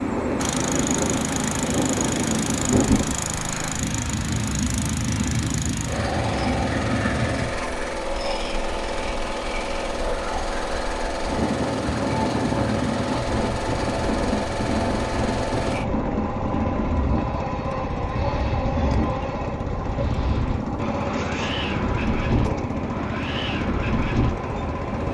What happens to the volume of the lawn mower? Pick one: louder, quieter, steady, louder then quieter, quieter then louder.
steady.